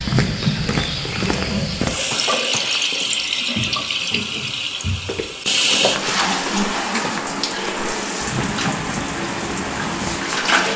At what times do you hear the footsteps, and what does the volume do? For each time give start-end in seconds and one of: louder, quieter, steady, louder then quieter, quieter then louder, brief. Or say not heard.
0.0-10.6 quieter.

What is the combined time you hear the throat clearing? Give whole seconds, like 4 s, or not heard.
3 s.